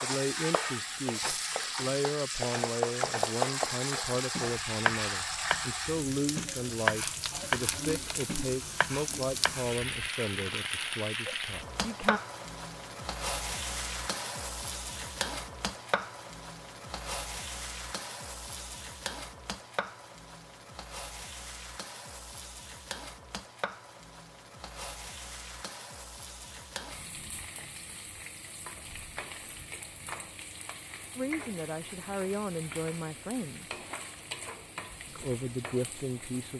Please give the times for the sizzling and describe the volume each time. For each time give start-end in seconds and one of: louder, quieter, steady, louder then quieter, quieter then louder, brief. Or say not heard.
0.0-36.5 quieter.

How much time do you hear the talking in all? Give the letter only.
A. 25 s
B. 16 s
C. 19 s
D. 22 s
B.